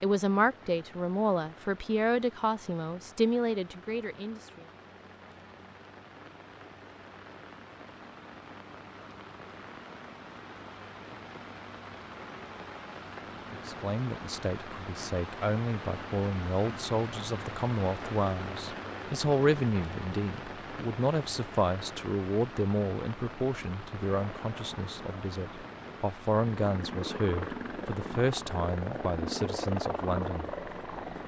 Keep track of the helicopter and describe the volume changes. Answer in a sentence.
The loudness of the helicopter goes up.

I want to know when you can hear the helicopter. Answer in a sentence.
The helicopter can be heard from 24.1 to 31.2 s.